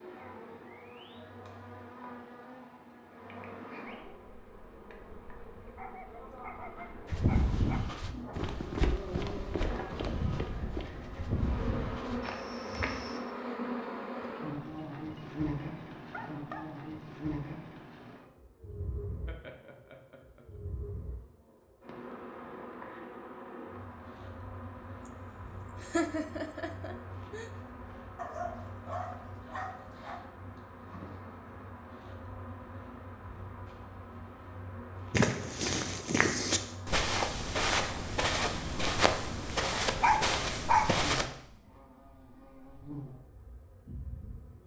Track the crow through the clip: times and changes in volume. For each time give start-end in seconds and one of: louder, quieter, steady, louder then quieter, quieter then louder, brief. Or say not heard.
not heard.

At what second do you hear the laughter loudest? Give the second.
26 s.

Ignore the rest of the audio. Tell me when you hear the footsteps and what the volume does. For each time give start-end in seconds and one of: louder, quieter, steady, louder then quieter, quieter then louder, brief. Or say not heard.
7.0-13.2 quieter
35.1-41.2 steady.